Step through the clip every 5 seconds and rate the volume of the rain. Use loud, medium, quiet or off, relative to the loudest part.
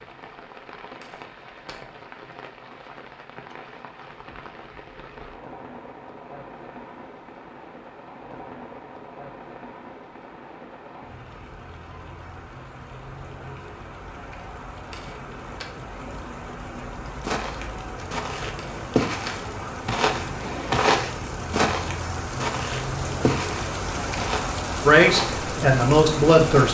quiet, quiet, quiet, medium, loud, loud.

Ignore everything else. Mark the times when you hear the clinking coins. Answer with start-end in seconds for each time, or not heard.
1.0-1.9, 14.9-15.7, 18.6-19.4.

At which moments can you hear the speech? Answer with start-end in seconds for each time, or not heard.
24.9-26.6.